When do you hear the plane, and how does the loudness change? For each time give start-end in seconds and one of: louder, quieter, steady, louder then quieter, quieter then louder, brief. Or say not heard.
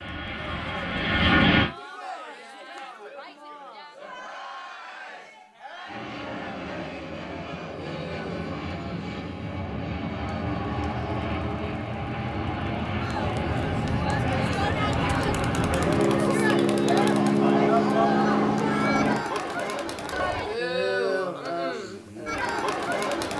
0.0-1.7 brief
5.8-19.2 louder.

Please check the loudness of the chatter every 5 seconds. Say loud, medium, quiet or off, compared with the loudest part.
quiet, quiet, medium, loud, loud.